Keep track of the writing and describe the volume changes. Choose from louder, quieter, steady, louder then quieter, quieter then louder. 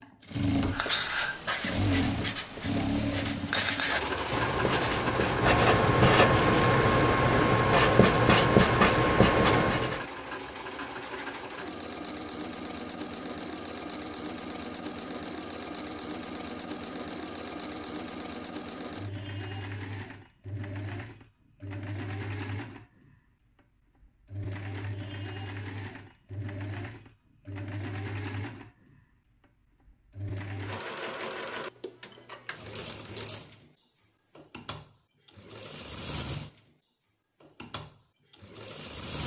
louder.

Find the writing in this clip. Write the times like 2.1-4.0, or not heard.
0.5-10.1.